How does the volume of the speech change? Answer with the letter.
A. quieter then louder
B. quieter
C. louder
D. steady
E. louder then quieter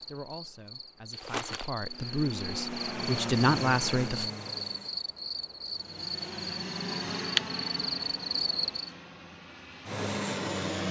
C.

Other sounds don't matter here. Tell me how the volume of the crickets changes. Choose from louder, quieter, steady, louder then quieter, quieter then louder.
louder.